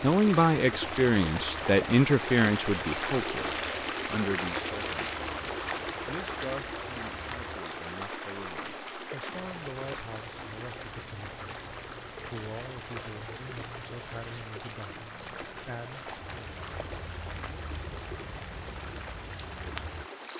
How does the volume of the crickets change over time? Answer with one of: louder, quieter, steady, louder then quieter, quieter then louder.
louder.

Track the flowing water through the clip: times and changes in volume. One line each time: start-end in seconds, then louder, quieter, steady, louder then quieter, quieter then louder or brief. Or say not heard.
0.0-20.3 quieter.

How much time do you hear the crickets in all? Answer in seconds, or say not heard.
20 s.